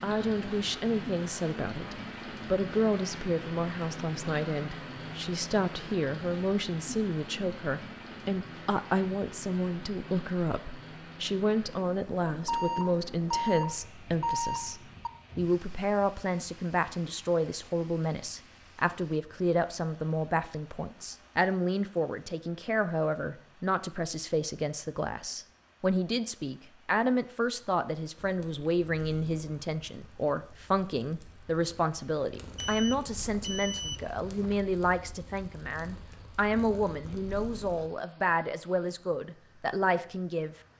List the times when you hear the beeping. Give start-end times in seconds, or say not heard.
12.4-15.1, 32.5-34.6.